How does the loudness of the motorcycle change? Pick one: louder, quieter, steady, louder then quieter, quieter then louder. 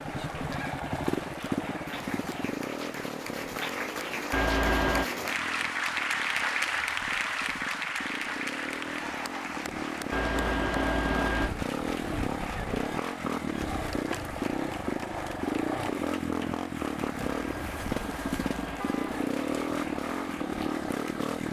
quieter then louder.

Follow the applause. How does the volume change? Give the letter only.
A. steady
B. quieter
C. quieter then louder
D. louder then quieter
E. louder
D.